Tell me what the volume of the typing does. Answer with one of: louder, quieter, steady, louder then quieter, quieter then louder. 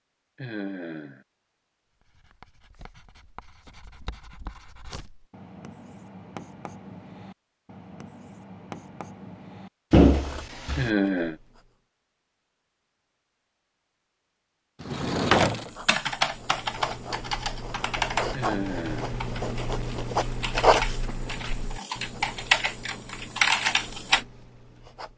quieter then louder.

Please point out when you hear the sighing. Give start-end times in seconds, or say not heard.
0.3-1.2, 10.8-11.3, 18.3-19.2.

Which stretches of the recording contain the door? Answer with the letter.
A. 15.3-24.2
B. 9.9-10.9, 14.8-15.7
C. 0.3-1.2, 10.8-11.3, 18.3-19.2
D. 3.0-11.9
B.